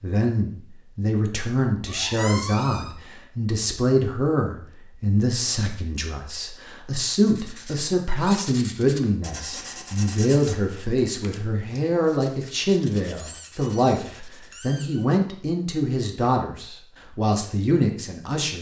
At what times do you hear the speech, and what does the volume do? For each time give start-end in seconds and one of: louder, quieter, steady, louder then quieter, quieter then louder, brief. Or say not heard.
0.0-18.5 steady.